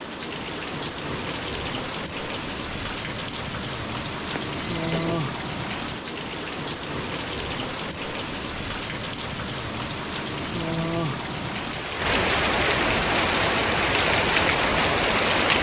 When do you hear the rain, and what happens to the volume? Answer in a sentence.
You can hear the rain from 0.0 to 15.5 s, getting louder.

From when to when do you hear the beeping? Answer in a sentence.
The beeping can be heard from 4.5 to 5.2 s.